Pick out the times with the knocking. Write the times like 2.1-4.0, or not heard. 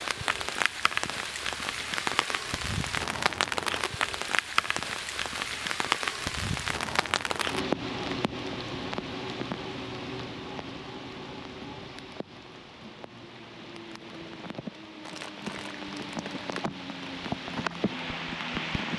not heard.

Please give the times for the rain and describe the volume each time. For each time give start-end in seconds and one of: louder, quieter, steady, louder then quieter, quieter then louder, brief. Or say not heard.
0.0-18.9 quieter then louder.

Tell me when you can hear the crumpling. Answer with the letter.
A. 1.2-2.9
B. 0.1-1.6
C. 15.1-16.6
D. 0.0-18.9
C.